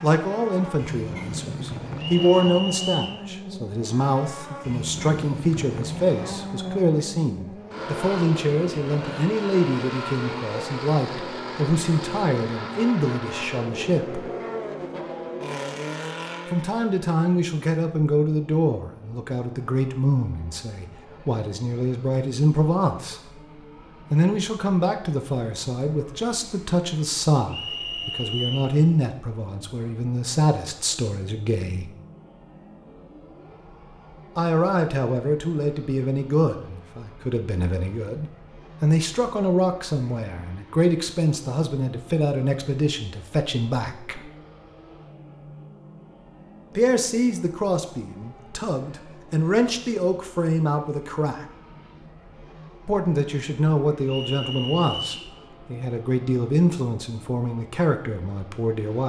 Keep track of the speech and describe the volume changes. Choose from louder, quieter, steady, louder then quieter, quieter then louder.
steady.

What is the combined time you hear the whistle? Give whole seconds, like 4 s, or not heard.
4 s.